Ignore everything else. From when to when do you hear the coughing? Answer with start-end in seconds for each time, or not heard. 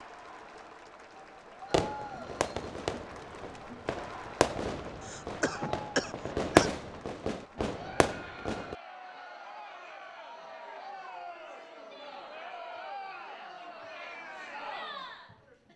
5.0-6.7.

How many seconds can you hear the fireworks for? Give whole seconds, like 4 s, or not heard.
7 s.